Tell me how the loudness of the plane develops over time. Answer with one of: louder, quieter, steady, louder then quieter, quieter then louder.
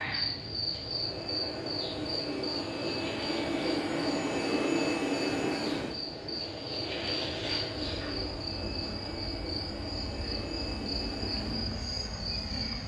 louder then quieter.